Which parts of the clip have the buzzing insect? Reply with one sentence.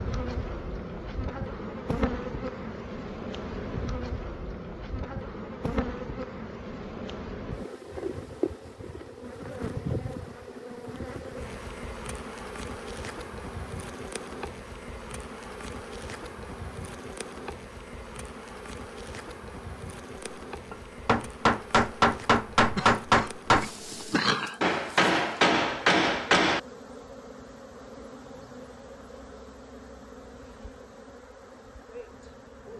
The buzzing insect can be heard from 0.0 to 32.7 s.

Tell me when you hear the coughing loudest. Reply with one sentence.
The loudest moment of the coughing is at 24 seconds.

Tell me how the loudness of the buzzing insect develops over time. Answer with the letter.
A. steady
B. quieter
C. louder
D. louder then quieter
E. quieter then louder
B.